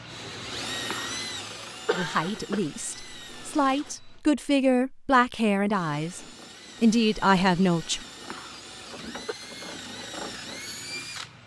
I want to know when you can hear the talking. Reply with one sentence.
The talking can be heard from 1.9 to 6.2 s and from 6.8 to 8.1 s.